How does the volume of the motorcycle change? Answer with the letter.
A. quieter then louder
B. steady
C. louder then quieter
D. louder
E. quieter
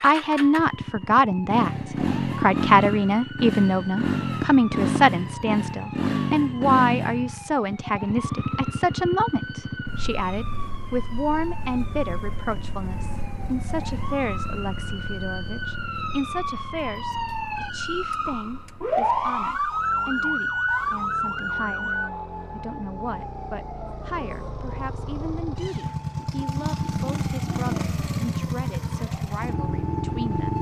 A.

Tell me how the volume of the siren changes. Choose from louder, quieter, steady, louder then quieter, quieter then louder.
louder then quieter.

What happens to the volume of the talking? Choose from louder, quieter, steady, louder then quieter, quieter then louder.
quieter.